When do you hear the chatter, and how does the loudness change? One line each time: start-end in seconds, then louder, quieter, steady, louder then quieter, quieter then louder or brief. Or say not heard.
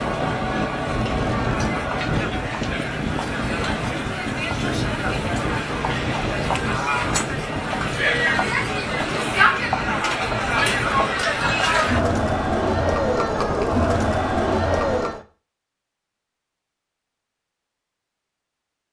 0.0-15.2 louder.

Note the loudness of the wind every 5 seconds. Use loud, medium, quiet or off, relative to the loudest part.
loud, loud, medium, off.